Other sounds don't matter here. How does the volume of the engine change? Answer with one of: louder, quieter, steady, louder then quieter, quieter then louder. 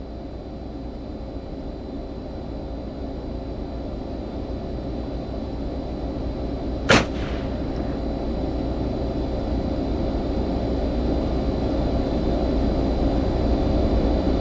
louder.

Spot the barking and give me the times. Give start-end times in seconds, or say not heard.
not heard.